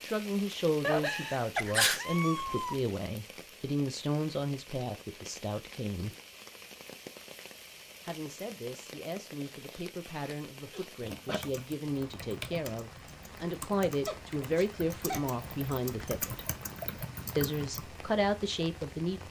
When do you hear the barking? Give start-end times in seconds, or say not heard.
not heard.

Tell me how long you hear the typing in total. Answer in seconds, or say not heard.
7 s.